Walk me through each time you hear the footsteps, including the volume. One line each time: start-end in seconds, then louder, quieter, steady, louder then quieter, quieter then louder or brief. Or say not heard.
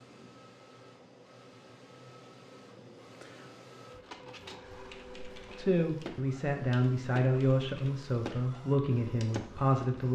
not heard.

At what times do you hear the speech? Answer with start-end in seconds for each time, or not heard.
5.5-10.1.